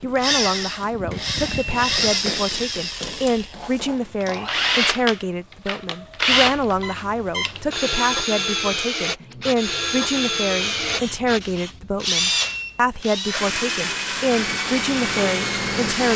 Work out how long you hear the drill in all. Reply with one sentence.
The drill can be heard for 16 seconds in total.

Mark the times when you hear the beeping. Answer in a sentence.
You can hear the beeping from 0.9 to 2.1 s, from 6.3 to 7.8 s and from 12.3 to 13.1 s.